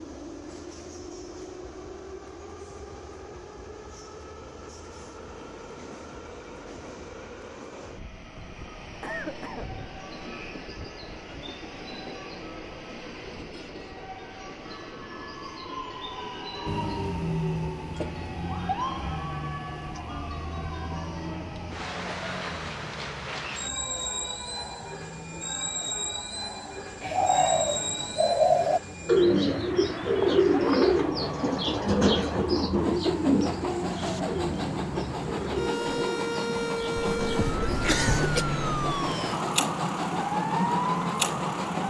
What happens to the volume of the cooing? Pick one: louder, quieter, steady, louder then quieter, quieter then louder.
quieter.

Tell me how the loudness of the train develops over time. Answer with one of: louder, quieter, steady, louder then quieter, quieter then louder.
louder.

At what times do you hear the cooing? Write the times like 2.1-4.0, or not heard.
27.0-37.9.